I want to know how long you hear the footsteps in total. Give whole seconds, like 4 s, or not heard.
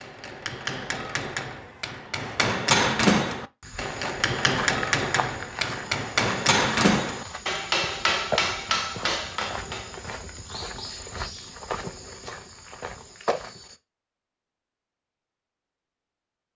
10 s.